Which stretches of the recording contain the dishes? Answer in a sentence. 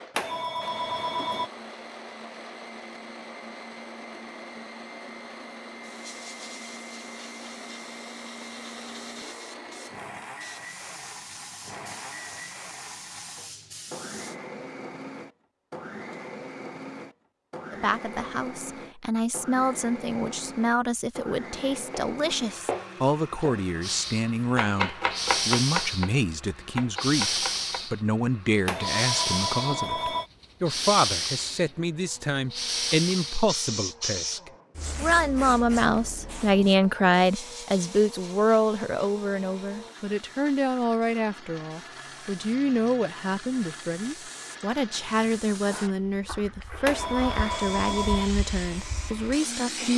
The dishes can't be heard in this clip.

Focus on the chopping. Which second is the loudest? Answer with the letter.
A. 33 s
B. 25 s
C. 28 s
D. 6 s
B.